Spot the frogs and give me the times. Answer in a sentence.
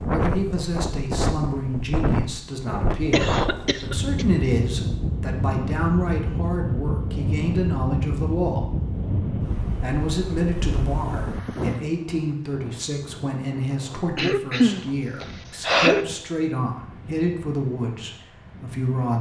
The frogs can't be heard in this clip.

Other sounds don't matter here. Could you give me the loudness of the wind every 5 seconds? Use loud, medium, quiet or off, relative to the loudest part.
loud, loud, medium, quiet.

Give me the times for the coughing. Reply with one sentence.
You can hear the coughing from 3.1 to 4.2 s and from 14.2 to 16.1 s.